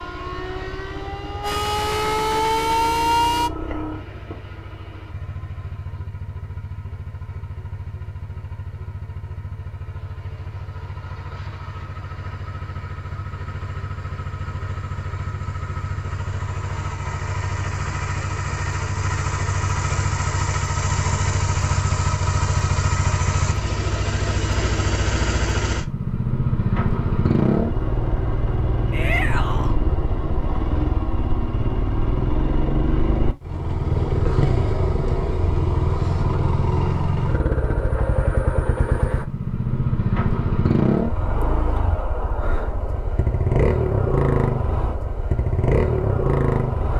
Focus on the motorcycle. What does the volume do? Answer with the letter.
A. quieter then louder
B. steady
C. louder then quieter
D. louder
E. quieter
D.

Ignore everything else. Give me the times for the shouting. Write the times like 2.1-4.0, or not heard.
28.9-29.8.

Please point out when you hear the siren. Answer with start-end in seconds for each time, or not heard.
0.0-3.5.